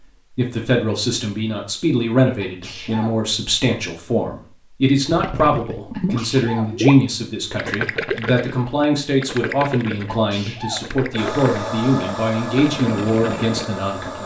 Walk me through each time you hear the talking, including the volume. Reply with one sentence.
The talking can be heard from 0.3 to 14.2 s, at a steady volume.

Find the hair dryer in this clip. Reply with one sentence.
The hair dryer can be heard from 11.2 to 14.2 s.